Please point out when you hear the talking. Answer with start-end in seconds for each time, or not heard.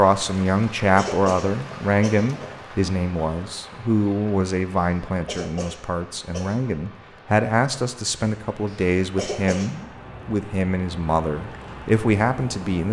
0.0-12.8.